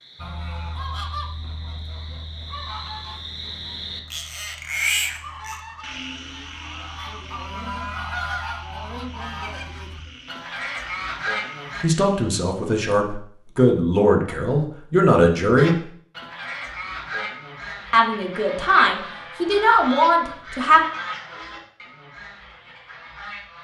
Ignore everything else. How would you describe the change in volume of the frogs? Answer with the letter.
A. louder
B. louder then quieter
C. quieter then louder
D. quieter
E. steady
B.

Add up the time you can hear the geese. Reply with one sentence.
The geese can be heard for 20 seconds in total.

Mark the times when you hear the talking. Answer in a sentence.
The talking can be heard from 11.8 to 15.8 s and from 17.9 to 20.9 s.